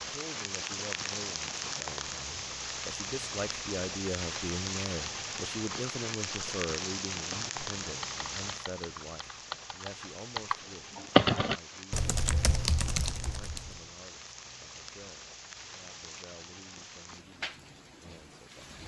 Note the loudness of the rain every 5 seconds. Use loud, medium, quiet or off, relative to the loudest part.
loud, loud, medium, medium.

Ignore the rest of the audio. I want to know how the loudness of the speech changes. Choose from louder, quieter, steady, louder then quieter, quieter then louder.
louder then quieter.